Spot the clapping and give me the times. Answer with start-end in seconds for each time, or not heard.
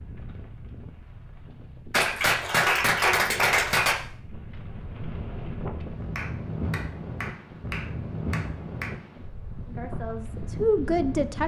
1.9-4.0, 6.2-8.9.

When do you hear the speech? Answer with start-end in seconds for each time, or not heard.
9.7-11.4.